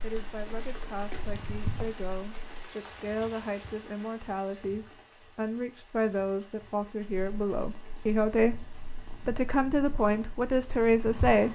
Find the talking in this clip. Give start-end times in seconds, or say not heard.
0.0-11.5.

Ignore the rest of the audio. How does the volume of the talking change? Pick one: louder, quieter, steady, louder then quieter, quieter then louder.
louder.